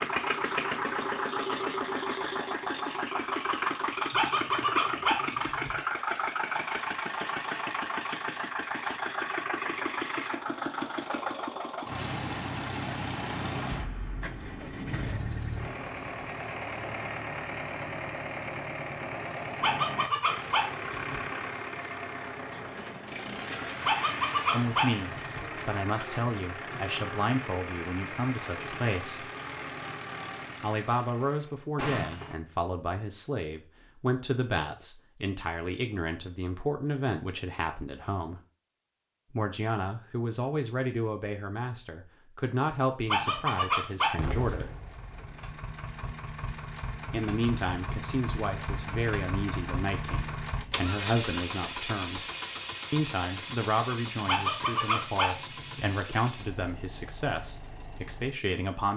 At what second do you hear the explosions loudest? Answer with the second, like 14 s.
32 s.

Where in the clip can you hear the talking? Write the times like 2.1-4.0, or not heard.
24.5-29.3, 30.6-38.4, 39.3-44.8, 47.1-52.2, 52.9-58.9.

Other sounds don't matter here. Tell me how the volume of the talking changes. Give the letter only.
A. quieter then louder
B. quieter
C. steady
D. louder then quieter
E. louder
C.